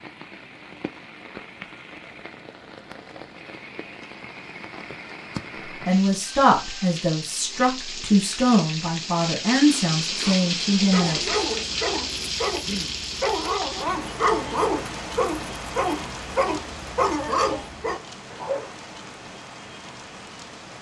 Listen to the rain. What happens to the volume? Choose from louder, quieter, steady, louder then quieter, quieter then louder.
louder then quieter.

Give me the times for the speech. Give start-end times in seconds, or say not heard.
5.8-11.2.